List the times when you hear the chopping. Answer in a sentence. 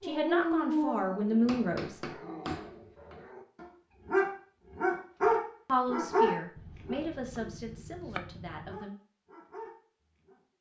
The chopping can be heard from 1.4 to 3.2 s and from 6.5 to 8.8 s.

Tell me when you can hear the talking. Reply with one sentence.
The talking can be heard from 0.0 to 2.0 s and from 5.7 to 9.0 s.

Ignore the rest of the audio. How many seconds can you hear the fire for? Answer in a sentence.
The fire can't be heard in this clip.